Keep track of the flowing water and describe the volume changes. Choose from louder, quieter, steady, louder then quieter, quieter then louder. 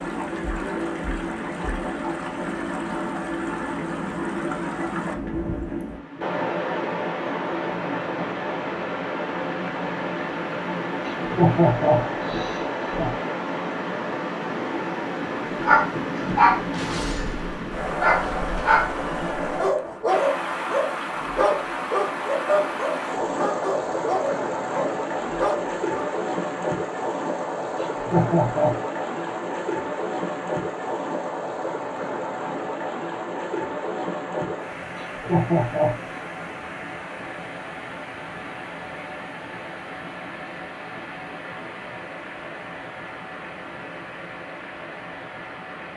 quieter.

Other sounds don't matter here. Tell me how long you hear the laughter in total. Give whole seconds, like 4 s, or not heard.
4 s.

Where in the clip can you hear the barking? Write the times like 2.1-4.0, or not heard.
15.6-26.1.